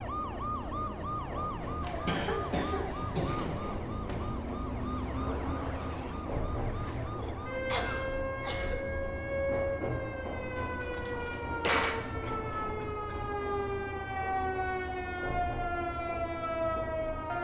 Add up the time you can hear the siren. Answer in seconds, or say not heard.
17 s.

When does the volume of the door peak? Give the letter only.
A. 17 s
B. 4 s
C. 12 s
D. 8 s
C.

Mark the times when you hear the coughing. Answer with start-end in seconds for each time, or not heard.
1.8-3.4, 7.7-8.8, 12.2-13.8.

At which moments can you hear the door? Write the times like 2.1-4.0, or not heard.
3.4-4.3, 10.6-12.0.